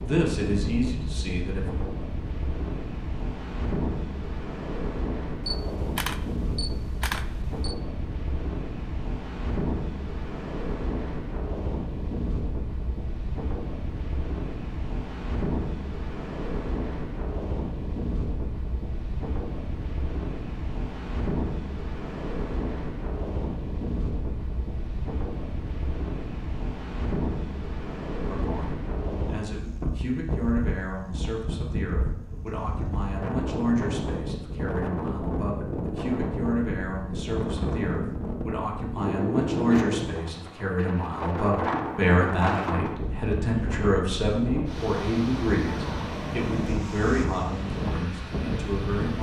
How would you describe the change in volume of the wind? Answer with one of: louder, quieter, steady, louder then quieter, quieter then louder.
steady.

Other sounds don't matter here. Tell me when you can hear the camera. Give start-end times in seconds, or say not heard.
5.5-7.8.